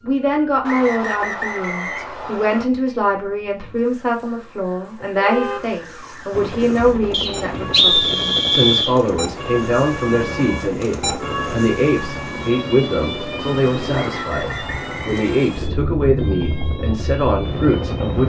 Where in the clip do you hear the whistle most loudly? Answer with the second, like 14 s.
8 s.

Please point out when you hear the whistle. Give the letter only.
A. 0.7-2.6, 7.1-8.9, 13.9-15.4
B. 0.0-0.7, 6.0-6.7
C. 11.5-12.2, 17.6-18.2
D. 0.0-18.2
A.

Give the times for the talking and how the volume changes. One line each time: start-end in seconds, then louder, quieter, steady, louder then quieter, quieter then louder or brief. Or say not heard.
0.0-18.2 steady.